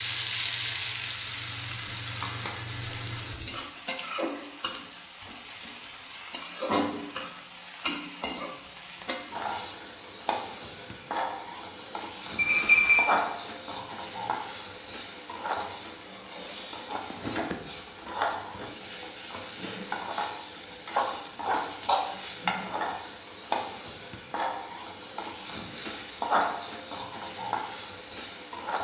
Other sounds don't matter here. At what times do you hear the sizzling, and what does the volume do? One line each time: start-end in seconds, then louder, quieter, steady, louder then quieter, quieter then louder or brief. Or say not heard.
0.0-28.7 steady.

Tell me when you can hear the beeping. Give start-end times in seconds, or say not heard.
12.3-13.0.